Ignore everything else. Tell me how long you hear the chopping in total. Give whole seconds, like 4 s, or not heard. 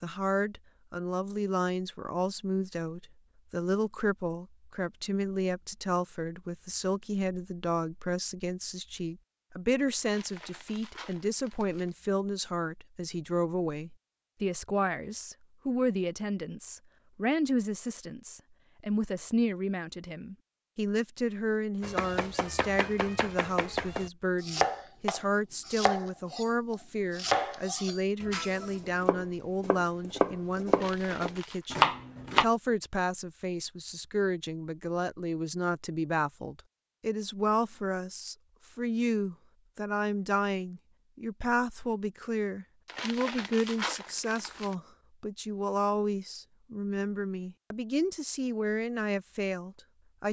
11 s.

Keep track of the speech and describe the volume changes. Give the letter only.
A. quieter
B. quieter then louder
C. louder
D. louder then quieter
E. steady
E.